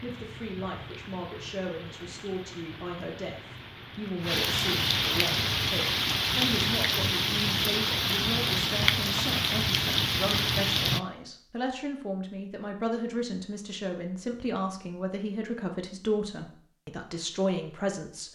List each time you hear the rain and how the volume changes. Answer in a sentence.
The rain can be heard from 0.0 to 11.0 s, getting louder.